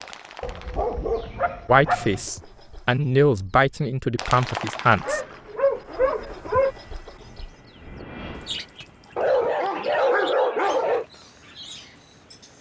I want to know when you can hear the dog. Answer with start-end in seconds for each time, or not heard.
0.4-2.2, 5.0-6.8, 9.2-11.1.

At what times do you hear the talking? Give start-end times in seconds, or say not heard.
1.6-5.2.